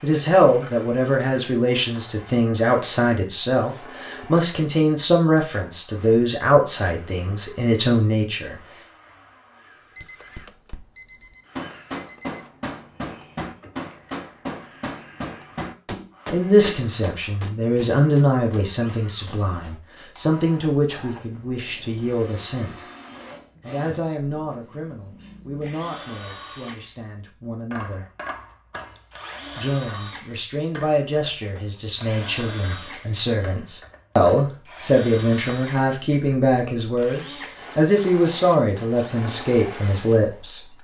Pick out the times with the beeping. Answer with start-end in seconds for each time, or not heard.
9.9-12.5.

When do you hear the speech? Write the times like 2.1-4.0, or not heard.
0.0-8.6, 16.3-22.9, 23.6-28.1, 29.5-40.7.